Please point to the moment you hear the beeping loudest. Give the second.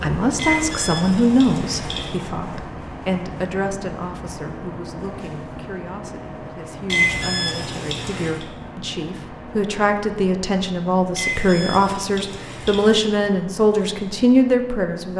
7 s.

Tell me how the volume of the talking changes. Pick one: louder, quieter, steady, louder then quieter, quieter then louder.
quieter then louder.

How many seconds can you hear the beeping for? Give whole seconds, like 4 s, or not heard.
5 s.